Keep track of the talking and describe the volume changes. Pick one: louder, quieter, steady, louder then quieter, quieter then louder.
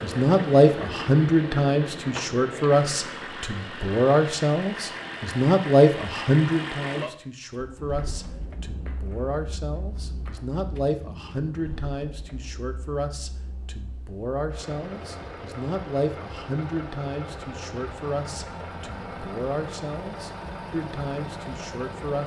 quieter.